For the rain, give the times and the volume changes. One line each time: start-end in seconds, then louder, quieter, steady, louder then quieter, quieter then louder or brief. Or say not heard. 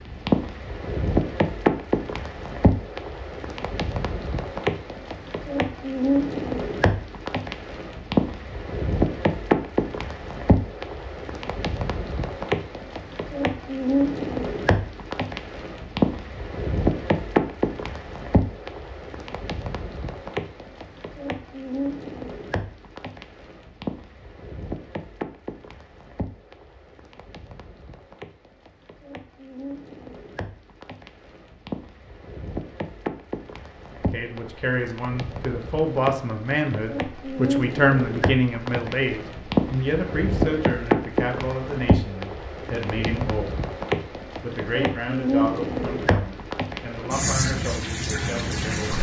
0.0-48.9 quieter then louder.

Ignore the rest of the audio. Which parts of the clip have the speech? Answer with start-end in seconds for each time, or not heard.
34.0-43.5, 44.4-48.9.